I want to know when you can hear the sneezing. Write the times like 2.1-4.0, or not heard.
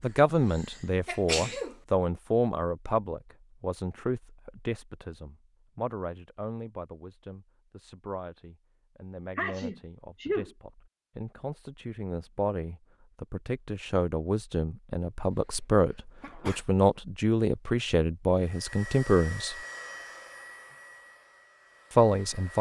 1.1-1.8, 9.3-10.5, 15.3-16.6.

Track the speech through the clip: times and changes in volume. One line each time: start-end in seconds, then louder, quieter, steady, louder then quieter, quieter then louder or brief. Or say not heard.
0.0-19.6 quieter then louder
21.9-22.5 brief.